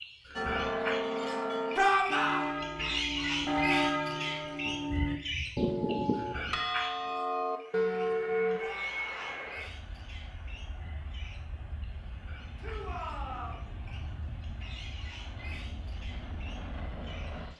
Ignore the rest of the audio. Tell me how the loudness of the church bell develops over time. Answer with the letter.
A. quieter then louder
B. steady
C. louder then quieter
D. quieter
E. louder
B.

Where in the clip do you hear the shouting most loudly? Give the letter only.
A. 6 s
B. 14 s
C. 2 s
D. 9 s
C.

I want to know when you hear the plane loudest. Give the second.
9 s.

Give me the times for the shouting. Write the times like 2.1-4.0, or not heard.
1.8-2.5, 8.6-9.4, 12.6-13.7.